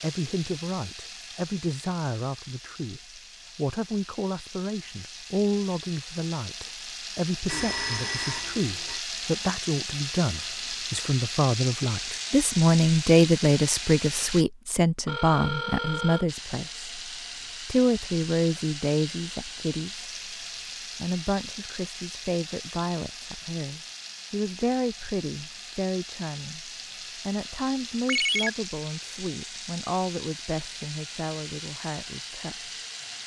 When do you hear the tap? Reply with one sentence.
The tap can be heard from 0.0 to 14.4 s and from 16.2 to 33.2 s.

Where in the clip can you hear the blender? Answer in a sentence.
You can't hear the blender here.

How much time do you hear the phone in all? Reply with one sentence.
You can hear the phone for 3 seconds altogether.